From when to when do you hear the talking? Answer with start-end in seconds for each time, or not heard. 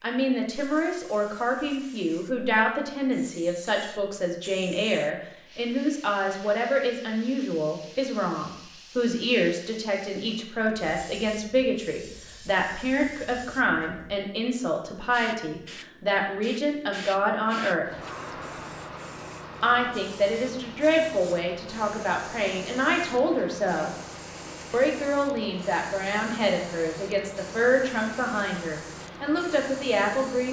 0.0-17.9, 19.6-23.9, 24.7-30.4.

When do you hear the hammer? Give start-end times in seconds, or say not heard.
not heard.